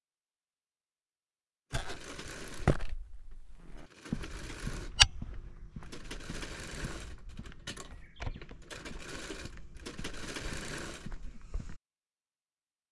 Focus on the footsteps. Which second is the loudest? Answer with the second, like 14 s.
5 s.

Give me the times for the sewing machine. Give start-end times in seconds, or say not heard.
1.7-11.2.